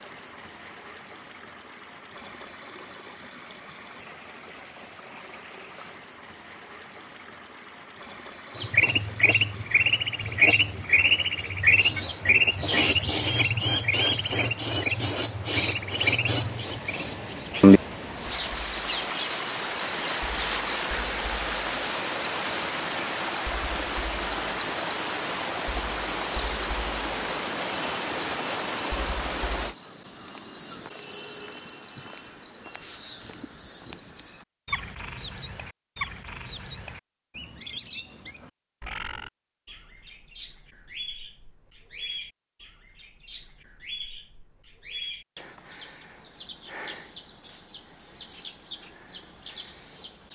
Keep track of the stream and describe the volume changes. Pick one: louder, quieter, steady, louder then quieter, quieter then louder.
louder.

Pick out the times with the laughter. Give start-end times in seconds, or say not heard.
not heard.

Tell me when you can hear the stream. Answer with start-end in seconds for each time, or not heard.
0.0-29.8.